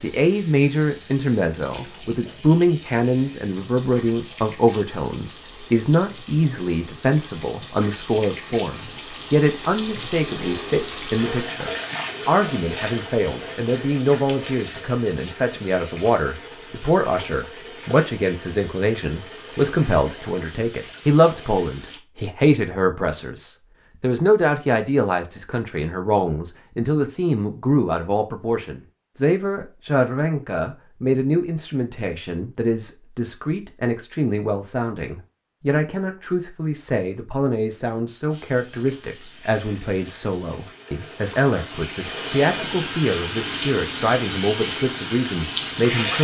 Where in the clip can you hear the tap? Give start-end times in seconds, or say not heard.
0.0-22.0, 38.3-46.1.